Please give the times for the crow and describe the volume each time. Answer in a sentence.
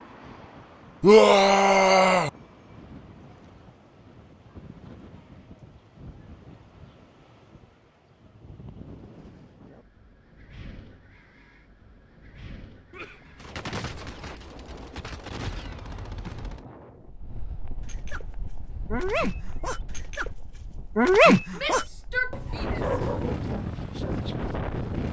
The crow can't be heard in this clip.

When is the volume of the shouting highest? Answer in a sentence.
The loudest moment of the shouting is at 1 second.